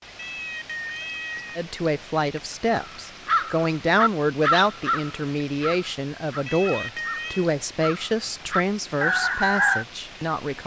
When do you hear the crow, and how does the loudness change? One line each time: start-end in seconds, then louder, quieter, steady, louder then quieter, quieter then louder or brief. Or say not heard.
2.7-9.8 quieter then louder.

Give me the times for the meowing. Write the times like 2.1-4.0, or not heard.
0.1-1.6, 6.5-7.5.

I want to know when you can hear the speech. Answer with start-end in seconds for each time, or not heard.
1.6-10.6.